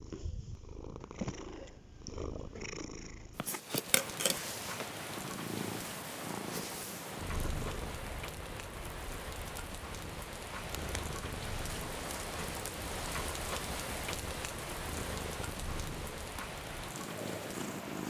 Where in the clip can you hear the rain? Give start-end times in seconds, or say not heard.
3.5-18.0.